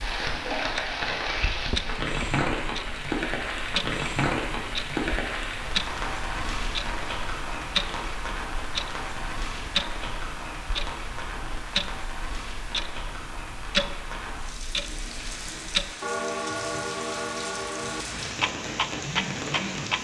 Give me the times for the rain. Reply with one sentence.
The rain can be heard from 0.0 to 19.9 s.